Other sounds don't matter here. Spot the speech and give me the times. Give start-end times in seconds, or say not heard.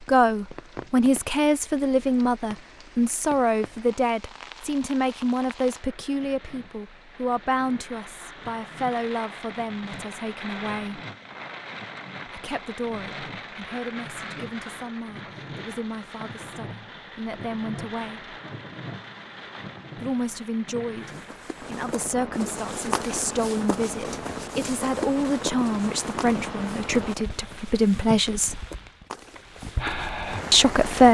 0.0-11.0, 12.2-18.3, 19.9-28.6, 30.5-31.0.